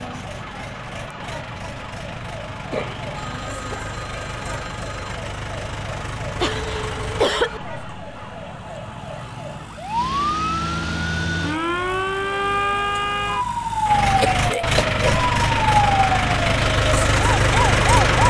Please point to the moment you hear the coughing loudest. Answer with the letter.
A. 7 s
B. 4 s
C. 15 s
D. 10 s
A.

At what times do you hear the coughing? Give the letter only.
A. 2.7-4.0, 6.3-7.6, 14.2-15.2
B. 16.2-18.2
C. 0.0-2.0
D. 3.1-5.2
A.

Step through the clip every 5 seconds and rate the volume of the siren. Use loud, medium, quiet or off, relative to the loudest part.
quiet, quiet, loud, loud.